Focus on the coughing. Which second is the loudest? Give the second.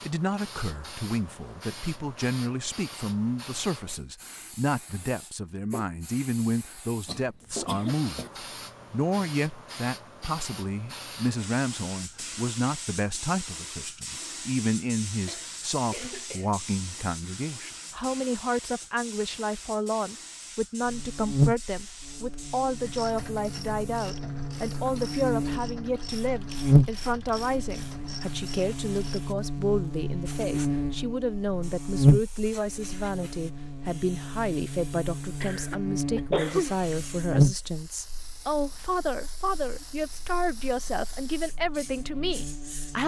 36 s.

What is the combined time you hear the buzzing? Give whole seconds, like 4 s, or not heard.
22 s.